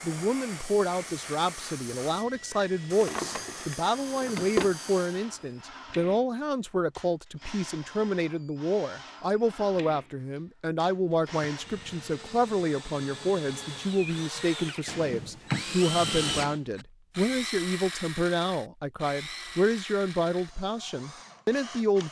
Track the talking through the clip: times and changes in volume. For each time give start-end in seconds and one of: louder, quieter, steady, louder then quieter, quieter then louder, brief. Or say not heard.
0.0-22.0 steady.